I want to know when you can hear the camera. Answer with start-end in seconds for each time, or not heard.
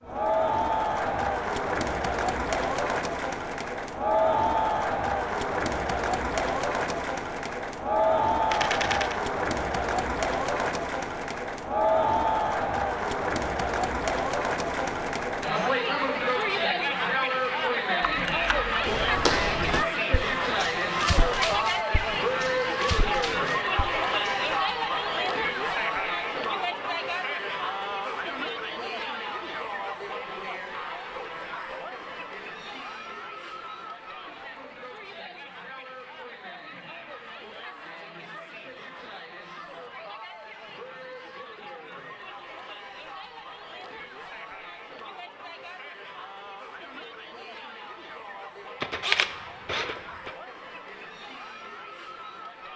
8.5-9.2, 18.0-18.8, 48.8-50.3.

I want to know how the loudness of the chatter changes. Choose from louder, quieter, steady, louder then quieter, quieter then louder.
quieter.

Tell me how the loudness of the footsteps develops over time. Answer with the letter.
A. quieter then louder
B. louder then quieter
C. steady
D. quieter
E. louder
D.